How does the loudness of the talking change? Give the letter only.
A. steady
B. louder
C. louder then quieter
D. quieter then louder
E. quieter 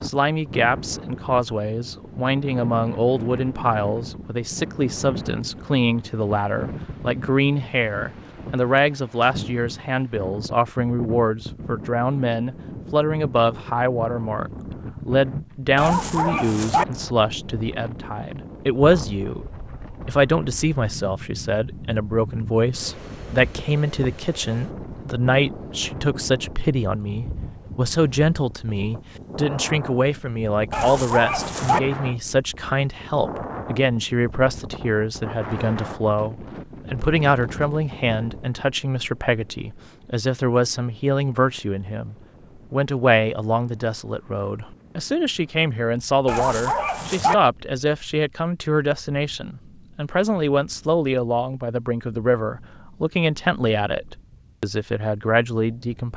A.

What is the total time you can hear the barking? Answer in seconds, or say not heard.
3 s.